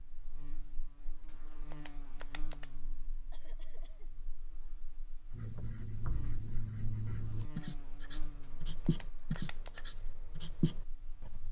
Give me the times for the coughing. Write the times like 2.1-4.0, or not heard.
3.3-4.1.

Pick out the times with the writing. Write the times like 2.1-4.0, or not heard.
5.3-11.4.